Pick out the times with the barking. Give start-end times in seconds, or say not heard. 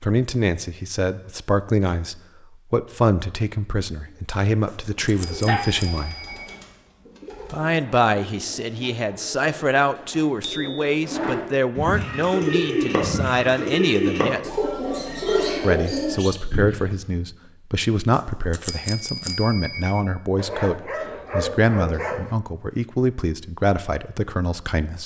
5.0-5.7, 20.4-22.4.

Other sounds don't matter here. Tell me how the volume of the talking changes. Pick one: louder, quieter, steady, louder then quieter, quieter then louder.
steady.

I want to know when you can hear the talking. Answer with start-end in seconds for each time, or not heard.
0.0-6.2, 7.5-14.4, 15.6-25.0.